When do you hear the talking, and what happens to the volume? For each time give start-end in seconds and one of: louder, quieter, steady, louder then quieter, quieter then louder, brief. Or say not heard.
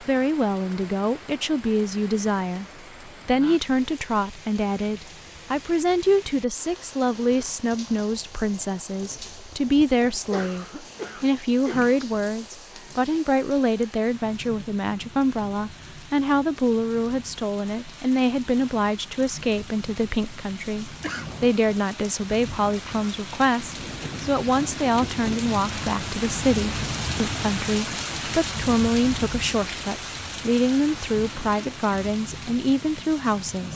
0.0-33.7 steady.